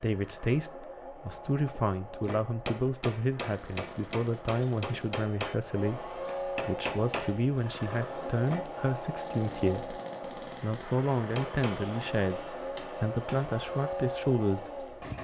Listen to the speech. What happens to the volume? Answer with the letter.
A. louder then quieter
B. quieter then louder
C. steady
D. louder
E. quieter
C.